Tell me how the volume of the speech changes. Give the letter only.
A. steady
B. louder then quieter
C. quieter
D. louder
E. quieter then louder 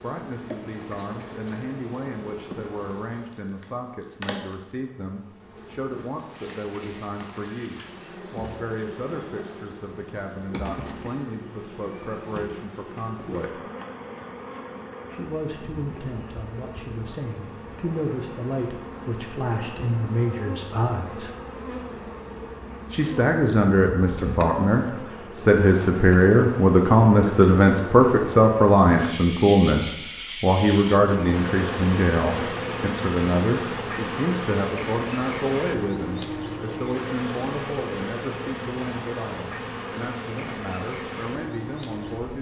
B.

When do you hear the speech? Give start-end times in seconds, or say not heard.
0.0-13.6, 15.1-21.3, 22.9-42.3.